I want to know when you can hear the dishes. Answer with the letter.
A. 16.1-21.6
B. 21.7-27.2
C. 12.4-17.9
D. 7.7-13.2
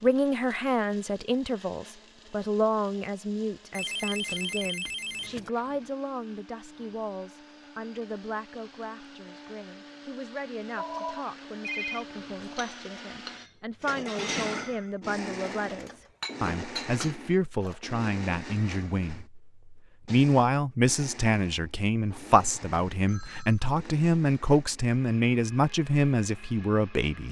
C.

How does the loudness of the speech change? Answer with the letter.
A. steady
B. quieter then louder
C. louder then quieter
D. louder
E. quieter
B.